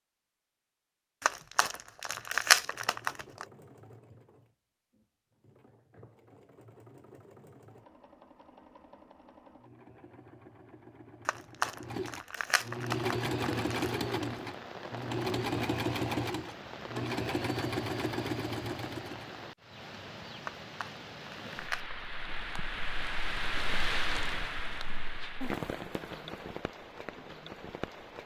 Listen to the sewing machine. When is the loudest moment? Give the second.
16 s.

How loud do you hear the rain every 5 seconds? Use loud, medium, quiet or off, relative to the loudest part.
off, off, medium, medium, loud, loud.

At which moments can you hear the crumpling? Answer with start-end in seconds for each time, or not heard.
1.2-3.5, 11.2-13.9, 20.4-22.0.